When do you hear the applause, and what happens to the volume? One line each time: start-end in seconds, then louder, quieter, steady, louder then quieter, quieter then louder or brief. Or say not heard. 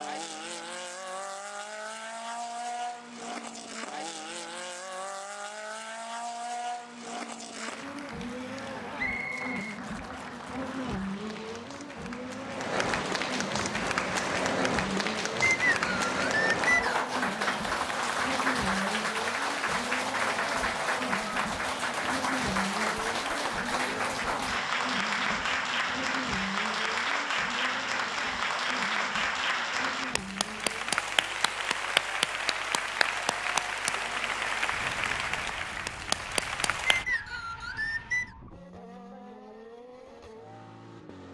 7.5-37.0 louder.